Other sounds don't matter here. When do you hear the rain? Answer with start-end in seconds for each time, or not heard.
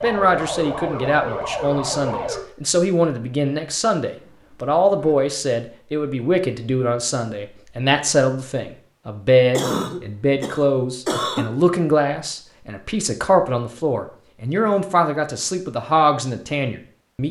not heard.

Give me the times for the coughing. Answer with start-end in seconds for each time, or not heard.
4.0-5.2, 9.6-11.5.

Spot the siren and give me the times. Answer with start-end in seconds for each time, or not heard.
0.0-2.4.